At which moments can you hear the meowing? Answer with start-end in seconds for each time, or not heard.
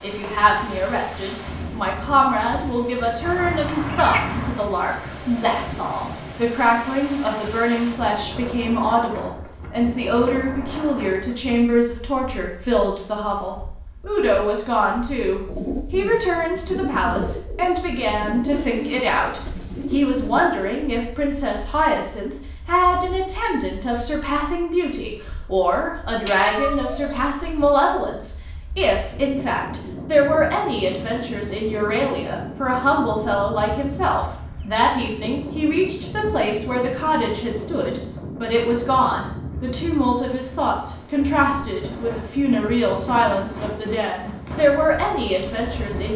3.2-4.7, 26.2-27.7, 34.4-34.9.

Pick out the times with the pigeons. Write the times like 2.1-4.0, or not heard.
15.4-20.6.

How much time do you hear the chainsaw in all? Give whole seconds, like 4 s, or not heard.
not heard.